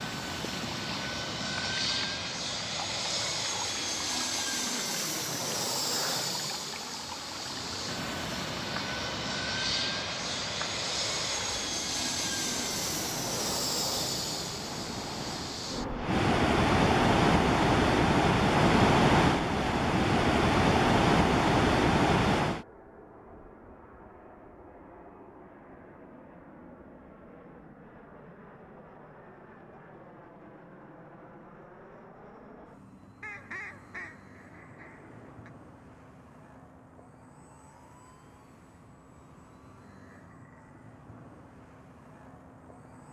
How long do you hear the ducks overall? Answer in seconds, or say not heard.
2 s.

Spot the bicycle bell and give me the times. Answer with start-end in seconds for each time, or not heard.
not heard.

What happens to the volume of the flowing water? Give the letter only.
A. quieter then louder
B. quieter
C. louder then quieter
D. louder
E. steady
D.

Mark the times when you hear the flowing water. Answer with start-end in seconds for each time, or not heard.
0.0-22.6.